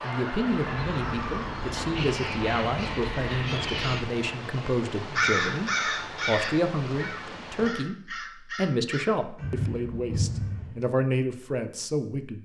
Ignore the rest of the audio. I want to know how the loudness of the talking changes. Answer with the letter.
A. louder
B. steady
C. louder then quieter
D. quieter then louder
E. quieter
B.